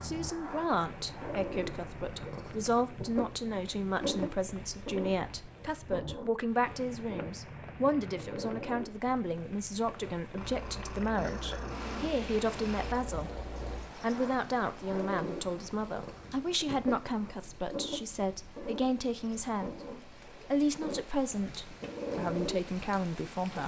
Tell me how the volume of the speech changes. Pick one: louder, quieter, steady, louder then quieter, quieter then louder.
steady.